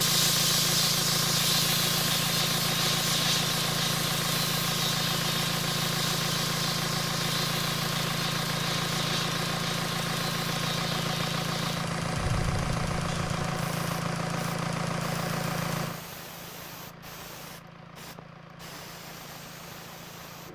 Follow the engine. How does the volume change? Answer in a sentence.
The volume of the engine goes down.